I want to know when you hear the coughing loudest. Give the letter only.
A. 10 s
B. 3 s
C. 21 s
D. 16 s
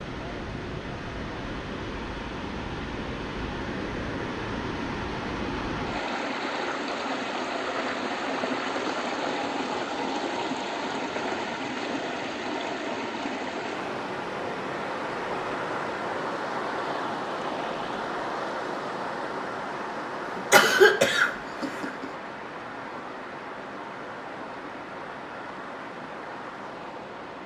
C.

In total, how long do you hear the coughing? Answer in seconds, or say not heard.
2 s.